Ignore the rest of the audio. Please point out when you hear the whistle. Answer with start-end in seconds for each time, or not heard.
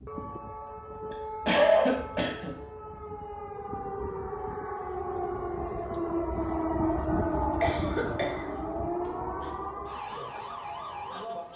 not heard.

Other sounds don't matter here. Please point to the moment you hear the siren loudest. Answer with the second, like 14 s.
7 s.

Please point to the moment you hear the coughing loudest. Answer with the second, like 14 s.
2 s.